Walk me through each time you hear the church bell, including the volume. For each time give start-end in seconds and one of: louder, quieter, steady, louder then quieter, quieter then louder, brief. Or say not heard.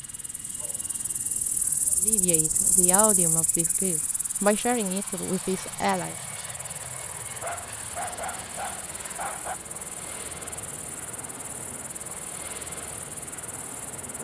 not heard.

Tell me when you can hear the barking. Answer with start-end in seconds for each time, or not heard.
0.6-1.9, 7.4-9.6.